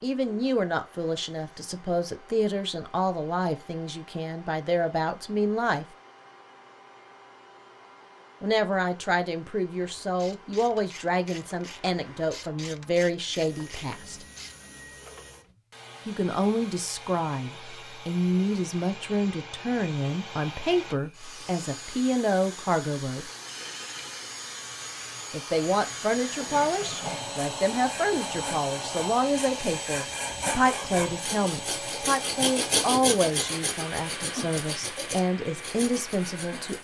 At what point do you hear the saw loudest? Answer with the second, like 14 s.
33 s.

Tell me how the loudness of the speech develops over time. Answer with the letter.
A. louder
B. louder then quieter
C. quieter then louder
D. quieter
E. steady
E.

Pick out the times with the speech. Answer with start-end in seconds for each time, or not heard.
0.0-5.8, 8.4-14.2, 16.1-23.2, 25.3-36.8.